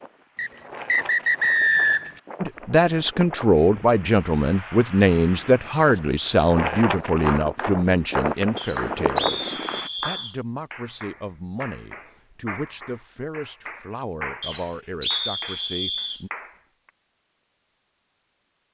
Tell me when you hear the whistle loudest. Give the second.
2 s.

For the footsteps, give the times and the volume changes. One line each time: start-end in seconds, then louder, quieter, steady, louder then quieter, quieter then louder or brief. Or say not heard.
not heard.